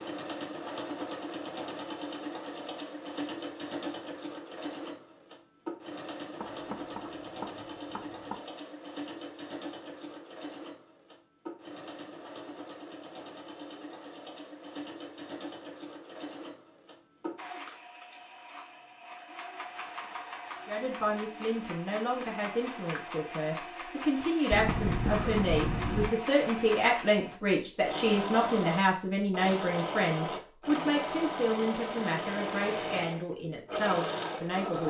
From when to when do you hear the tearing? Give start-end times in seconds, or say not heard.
not heard.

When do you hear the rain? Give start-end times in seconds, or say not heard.
not heard.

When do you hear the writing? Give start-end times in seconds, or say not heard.
6.4-8.3, 19.6-21.6, 24.5-26.1.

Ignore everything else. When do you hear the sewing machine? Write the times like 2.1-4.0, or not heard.
0.0-34.8.